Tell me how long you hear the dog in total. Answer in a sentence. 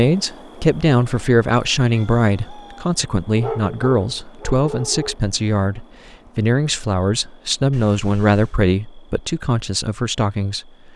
The dog can be heard for 2 seconds in total.